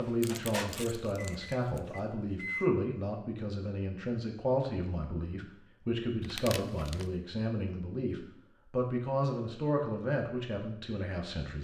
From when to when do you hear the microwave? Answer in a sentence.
The microwave can be heard from 0.0 to 2.6 s.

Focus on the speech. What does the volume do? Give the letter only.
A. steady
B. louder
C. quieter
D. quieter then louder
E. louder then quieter
A.